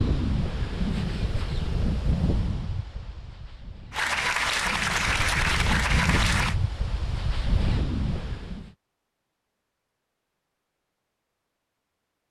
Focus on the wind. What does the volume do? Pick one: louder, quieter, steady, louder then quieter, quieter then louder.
quieter then louder.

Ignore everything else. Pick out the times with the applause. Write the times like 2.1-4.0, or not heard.
3.9-6.5.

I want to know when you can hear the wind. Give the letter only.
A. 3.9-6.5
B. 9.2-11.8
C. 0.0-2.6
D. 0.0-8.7
D.